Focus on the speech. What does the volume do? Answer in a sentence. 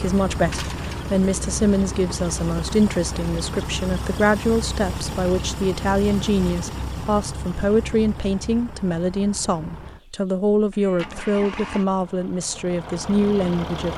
The volume of the speech stays about the same.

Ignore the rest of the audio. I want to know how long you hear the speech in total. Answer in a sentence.
The speech can be heard for 14 seconds in total.